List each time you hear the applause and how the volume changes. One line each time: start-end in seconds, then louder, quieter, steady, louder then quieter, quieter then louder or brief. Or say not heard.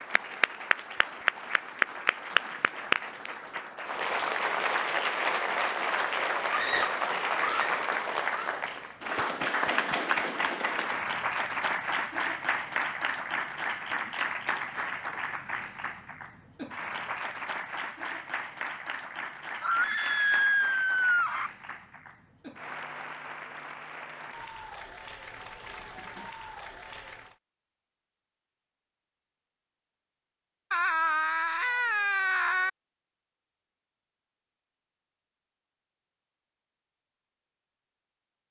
0.0-27.4 quieter.